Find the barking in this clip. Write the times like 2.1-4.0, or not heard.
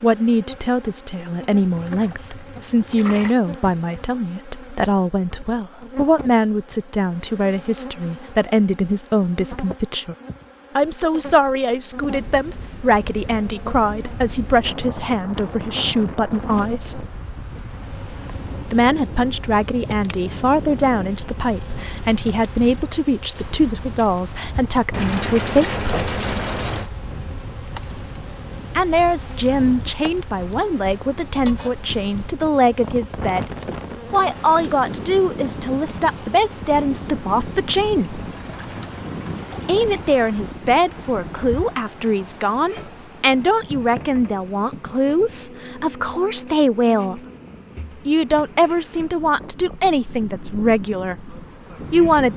not heard.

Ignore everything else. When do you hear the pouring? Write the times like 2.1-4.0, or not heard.
1.8-3.4, 24.9-26.9, 38.3-40.1.